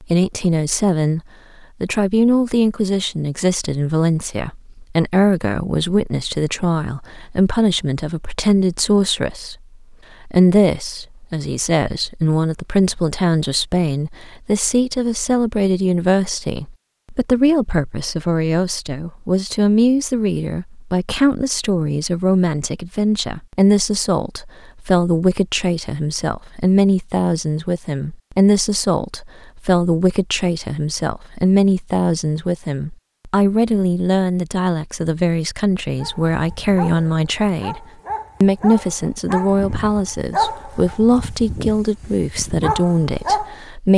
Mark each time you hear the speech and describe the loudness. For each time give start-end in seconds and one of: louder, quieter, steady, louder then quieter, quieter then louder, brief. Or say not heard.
0.0-1.2 brief
1.8-9.6 steady
10.2-43.9 steady.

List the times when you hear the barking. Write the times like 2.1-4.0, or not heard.
36.0-43.5.